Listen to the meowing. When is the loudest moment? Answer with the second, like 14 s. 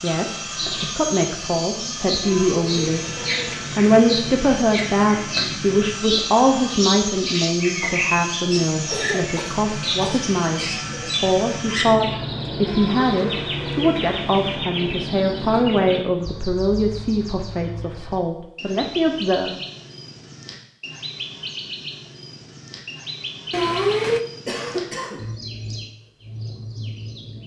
24 s.